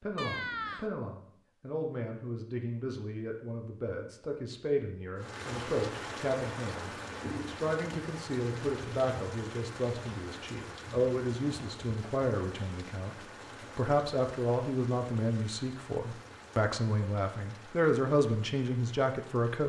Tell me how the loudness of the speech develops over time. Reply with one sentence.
The loudness of the speech goes up.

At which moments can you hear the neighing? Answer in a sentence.
You can hear the neighing from 0.1 to 0.9 s.